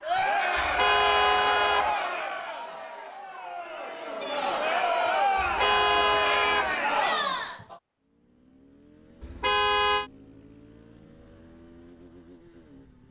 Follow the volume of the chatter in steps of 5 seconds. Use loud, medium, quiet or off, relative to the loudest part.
loud, loud, off.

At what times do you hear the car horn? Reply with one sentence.
The car horn can be heard from 0.6 to 1.9 s, from 5.3 to 6.8 s and from 9.2 to 10.1 s.